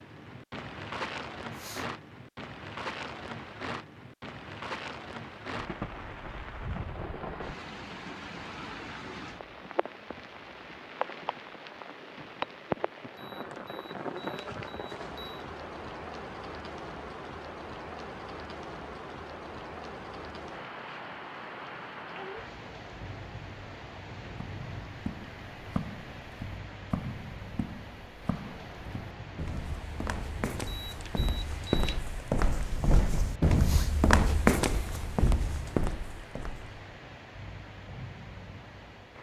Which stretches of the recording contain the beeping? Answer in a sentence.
The beeping can be heard from 13.2 to 15.4 s and from 30.7 to 32.0 s.